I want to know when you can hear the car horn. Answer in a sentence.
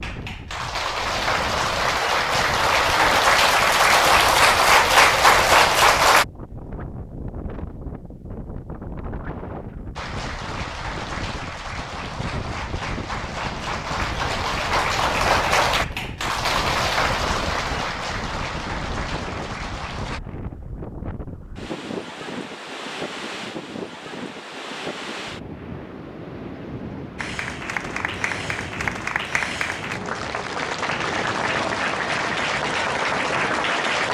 You can't hear the car horn here.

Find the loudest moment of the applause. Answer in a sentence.
The volume of the applause peaks at 5 seconds.